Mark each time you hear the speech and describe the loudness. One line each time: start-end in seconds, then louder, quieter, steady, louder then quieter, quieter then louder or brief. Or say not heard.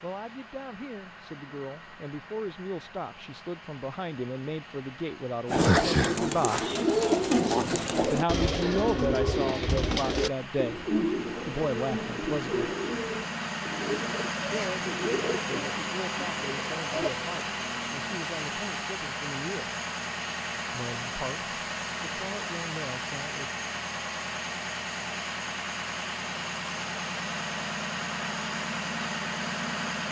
0.0-6.6 louder
8.0-12.8 quieter then louder
14.5-19.7 steady
20.7-23.5 brief.